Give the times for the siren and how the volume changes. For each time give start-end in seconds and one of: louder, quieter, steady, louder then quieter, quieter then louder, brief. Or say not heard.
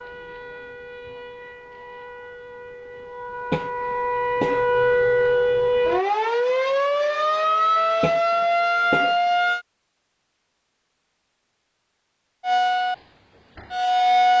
0.0-9.7 louder
12.4-14.3 brief.